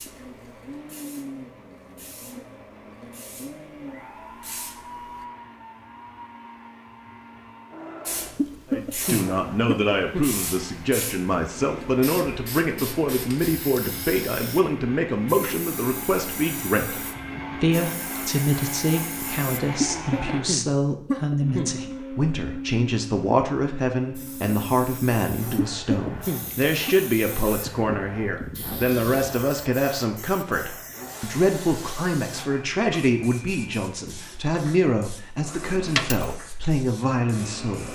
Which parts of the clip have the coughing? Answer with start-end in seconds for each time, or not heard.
8.3-10.2, 19.8-21.8, 25.6-26.9.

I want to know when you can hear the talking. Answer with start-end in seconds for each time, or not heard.
8.7-37.8.